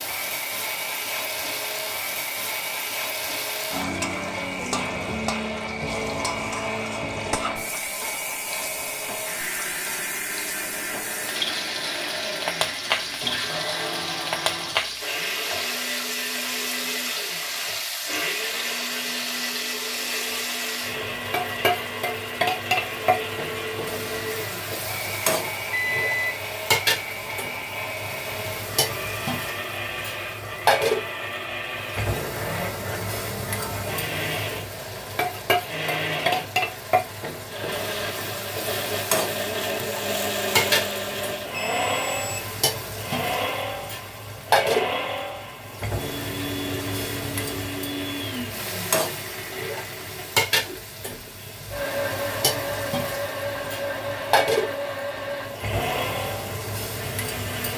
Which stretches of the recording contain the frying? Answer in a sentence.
You can hear the frying from 0.0 to 57.7 s.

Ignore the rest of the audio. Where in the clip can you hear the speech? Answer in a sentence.
The speech can't be heard in this clip.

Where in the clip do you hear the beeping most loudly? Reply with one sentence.
The loudest moment of the beeping is at 26 seconds.